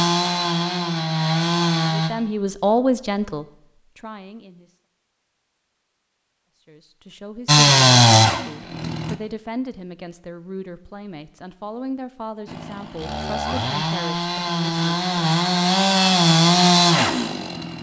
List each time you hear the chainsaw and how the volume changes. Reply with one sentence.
You can hear the chainsaw briefly from 0.0 to 2.1 s; briefly from 7.5 to 9.2 s; and from 12.4 to 17.7 s, getting louder.